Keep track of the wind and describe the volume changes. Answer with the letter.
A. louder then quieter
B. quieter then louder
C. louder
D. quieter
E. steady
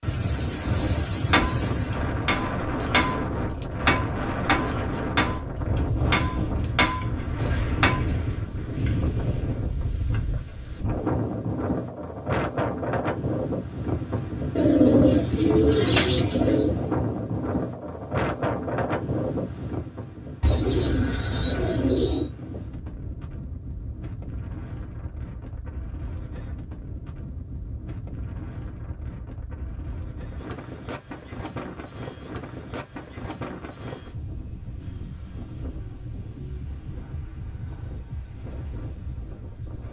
D.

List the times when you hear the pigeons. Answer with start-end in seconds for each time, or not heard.
14.6-16.8, 20.4-22.3.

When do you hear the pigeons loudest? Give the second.
15 s.